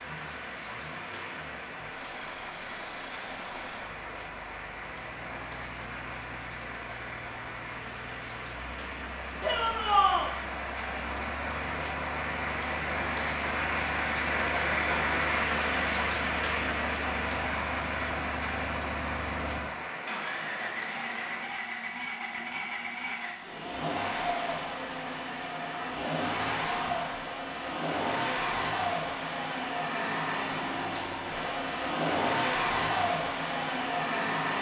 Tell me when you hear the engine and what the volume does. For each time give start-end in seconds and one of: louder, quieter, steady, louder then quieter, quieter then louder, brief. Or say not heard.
0.0-34.5 louder.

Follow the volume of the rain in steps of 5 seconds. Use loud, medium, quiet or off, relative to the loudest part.
medium, medium, loud, loud, medium, off, off.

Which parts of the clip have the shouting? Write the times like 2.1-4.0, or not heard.
9.4-10.3.